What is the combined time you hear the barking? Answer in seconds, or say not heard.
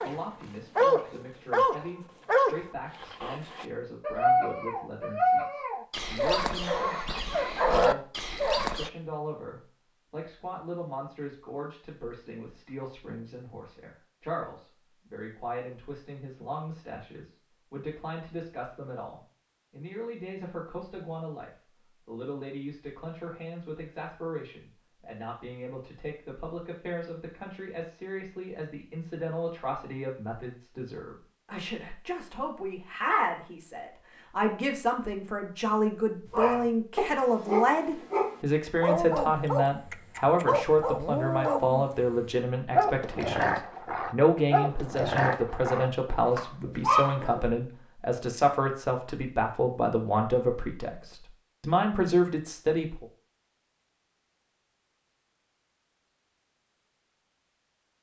20 s.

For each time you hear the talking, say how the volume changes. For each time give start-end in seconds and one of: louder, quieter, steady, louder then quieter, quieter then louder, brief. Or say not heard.
0.0-53.0 louder.